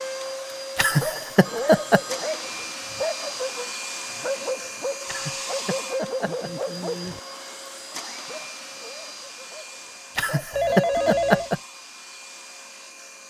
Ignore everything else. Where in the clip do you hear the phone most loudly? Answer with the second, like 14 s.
11 s.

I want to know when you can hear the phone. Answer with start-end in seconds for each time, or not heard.
1.4-2.8, 10.5-11.5.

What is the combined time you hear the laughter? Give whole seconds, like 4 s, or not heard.
4 s.